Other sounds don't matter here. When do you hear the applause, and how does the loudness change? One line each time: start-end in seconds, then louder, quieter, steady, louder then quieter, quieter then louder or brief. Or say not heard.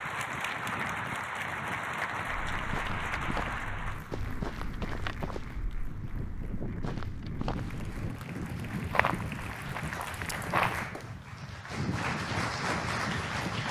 0.0-13.6 quieter then louder.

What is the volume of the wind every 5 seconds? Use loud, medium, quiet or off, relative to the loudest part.
medium, loud, loud.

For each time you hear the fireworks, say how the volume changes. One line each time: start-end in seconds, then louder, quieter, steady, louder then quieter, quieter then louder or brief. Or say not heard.
not heard.